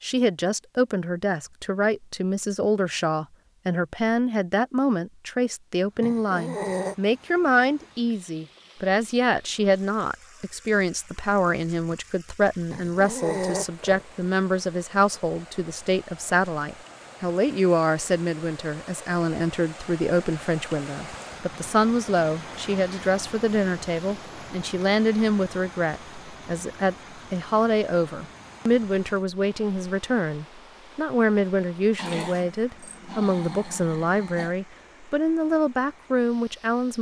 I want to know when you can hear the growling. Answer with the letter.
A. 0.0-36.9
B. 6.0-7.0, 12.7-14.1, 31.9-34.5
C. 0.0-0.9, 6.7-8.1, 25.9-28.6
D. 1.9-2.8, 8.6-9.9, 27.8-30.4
B.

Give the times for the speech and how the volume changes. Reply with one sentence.
The speech can be heard from 0.0 to 36.9 s, at a steady volume.